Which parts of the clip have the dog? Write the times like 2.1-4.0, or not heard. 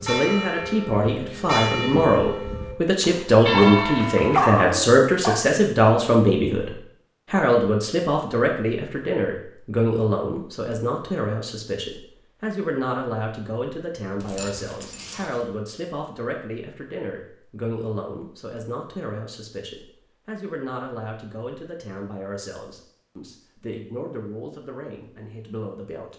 3.5-5.4, 14.2-15.4.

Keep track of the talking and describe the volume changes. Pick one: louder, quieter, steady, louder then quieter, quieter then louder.
quieter.